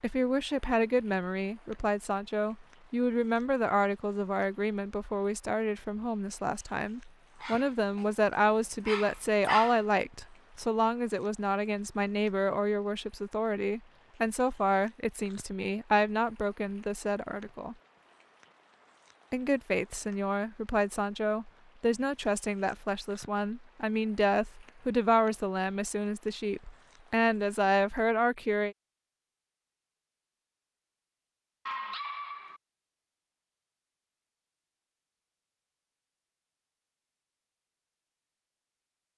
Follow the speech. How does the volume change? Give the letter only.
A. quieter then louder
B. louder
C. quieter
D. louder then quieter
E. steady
E.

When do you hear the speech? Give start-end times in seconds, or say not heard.
0.0-17.8, 19.3-28.8.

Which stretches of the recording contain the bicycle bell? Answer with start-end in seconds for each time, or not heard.
not heard.